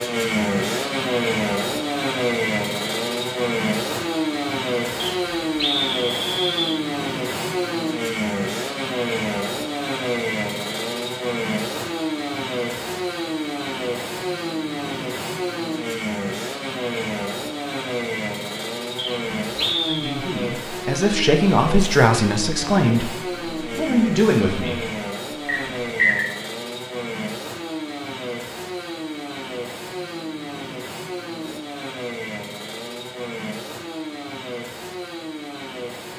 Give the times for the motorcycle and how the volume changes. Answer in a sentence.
The motorcycle can be heard from 0.0 to 36.1 s, getting quieter.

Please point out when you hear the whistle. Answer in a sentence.
You can hear the whistle from 5.0 to 6.8 s, from 18.9 to 20.1 s and from 25.4 to 26.3 s.